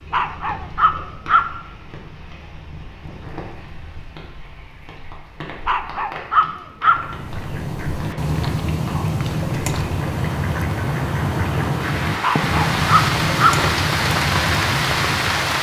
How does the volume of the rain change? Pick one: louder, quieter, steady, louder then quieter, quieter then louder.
louder.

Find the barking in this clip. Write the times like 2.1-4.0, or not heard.
0.1-1.4, 5.7-7.0, 12.2-13.6.